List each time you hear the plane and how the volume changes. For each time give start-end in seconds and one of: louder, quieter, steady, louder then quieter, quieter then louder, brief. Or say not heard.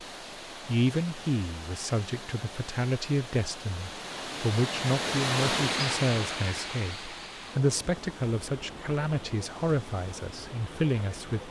not heard.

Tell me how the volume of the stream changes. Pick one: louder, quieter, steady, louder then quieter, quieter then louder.
louder then quieter.